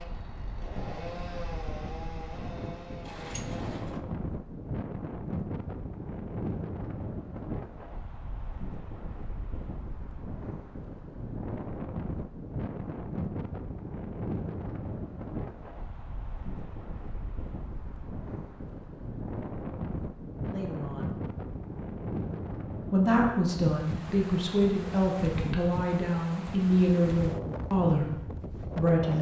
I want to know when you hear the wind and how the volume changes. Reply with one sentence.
The wind can be heard from 0.0 to 29.1 s, at a steady volume.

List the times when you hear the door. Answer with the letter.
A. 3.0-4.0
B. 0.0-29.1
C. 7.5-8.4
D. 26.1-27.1
A.